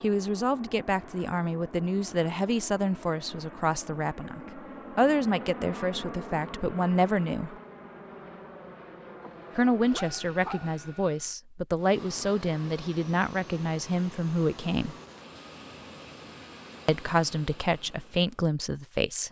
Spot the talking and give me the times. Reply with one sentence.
The talking can be heard from 0.0 to 7.5 s, from 9.6 to 14.9 s and from 16.9 to 19.2 s.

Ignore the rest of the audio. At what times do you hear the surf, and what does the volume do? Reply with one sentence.
You can't hear the surf here.